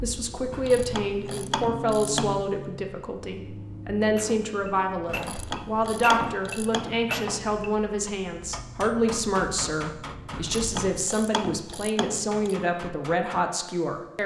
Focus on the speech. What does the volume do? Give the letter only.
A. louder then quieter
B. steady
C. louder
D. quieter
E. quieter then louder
B.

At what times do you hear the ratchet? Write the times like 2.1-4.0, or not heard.
0.5-2.5, 5.0-7.0, 10.3-12.6.